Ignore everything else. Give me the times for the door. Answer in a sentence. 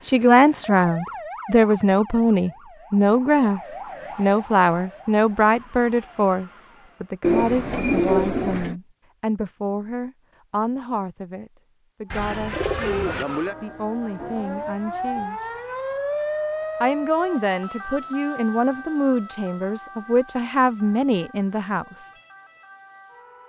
The door can't be heard in this clip.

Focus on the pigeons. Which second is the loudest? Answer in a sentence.
The loudest moment of the pigeons is at 8 seconds.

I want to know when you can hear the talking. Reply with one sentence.
The talking can be heard from 0.0 to 15.4 s and from 16.8 to 22.1 s.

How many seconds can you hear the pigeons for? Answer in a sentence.
The pigeons can be heard for 3 seconds in total.